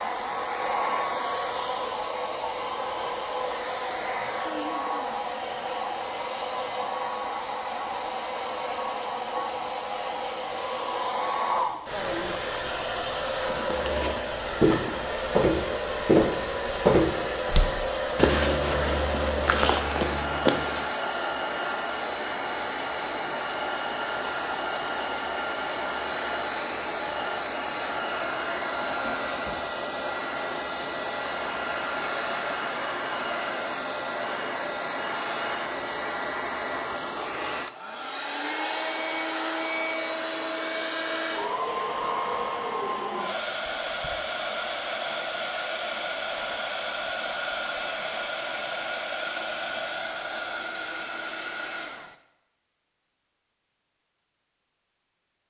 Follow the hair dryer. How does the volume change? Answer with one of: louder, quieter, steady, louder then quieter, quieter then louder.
steady.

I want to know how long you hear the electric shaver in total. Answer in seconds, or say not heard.
not heard.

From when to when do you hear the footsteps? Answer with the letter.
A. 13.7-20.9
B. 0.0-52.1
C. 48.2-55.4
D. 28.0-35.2
A.